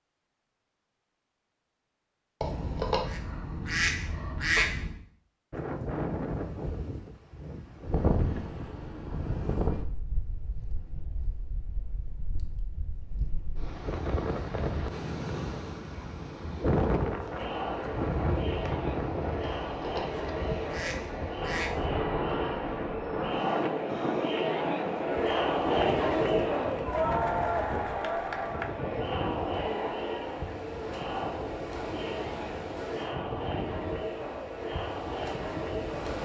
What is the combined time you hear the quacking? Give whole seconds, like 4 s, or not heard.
5 s.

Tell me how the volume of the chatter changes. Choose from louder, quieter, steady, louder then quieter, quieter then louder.
louder then quieter.